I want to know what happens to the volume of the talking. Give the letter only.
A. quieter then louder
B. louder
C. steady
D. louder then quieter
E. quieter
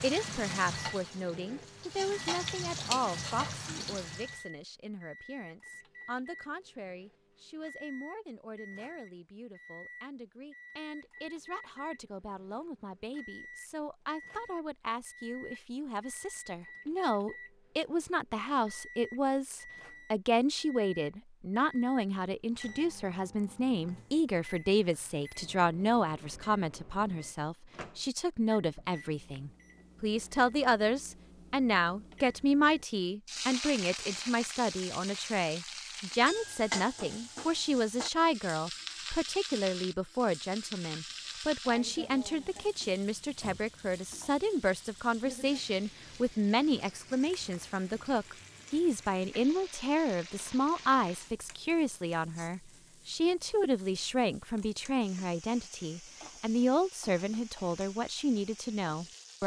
B.